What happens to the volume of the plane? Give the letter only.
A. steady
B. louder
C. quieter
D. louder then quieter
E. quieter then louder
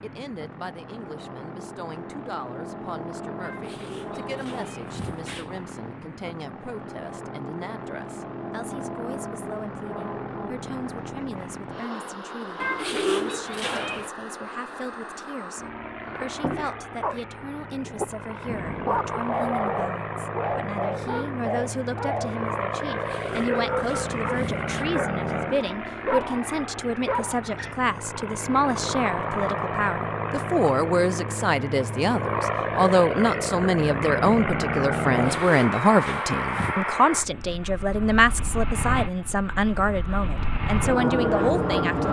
B.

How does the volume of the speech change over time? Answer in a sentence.
The volume of the speech goes up.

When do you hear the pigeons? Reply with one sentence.
You can hear the pigeons from 3.4 to 5.7 s, from 12.6 to 14.1 s, from 22.9 to 24.9 s and from 35.1 to 36.9 s.